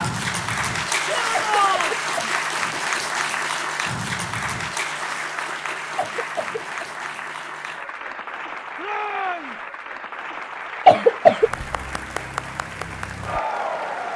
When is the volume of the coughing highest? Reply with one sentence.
The volume of the coughing peaks at 11 seconds.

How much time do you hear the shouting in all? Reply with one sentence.
You can hear the shouting for 2 seconds altogether.